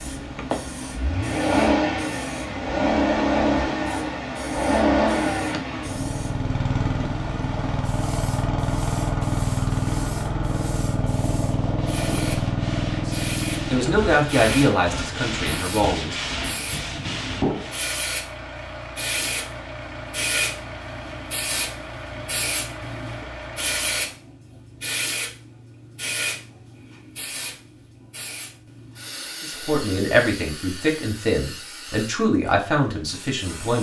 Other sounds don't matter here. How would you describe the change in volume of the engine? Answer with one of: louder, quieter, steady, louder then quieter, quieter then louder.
quieter.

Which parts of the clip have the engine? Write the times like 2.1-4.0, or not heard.
0.1-24.2.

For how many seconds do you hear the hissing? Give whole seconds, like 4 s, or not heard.
34 s.